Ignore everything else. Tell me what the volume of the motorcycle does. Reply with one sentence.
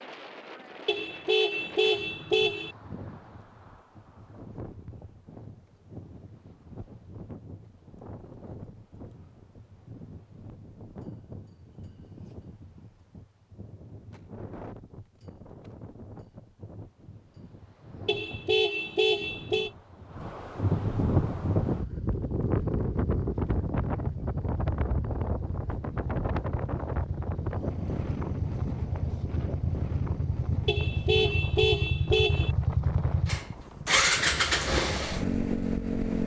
The loudness of the motorcycle goes up.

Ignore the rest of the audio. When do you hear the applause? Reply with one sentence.
You can't hear the applause here.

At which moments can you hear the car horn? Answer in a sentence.
The car horn can be heard from 0.8 to 2.8 s, from 18.1 to 19.7 s and from 30.6 to 32.5 s.